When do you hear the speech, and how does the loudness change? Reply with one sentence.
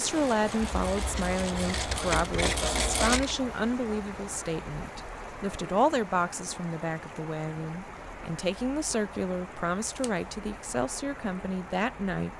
The speech can be heard from 0.0 to 12.3 s, at a steady volume.